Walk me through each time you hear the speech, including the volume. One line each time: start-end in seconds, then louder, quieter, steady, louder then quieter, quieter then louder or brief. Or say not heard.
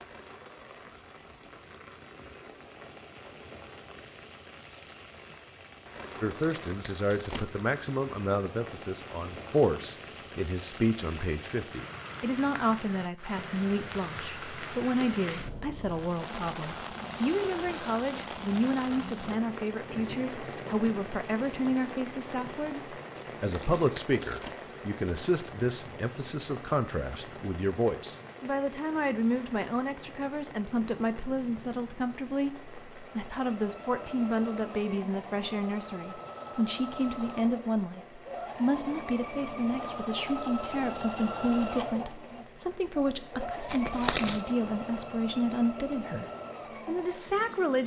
6.2-47.8 steady.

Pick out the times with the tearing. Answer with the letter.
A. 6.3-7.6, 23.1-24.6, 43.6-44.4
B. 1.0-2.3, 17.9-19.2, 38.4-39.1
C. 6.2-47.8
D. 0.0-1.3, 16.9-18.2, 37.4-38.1
A.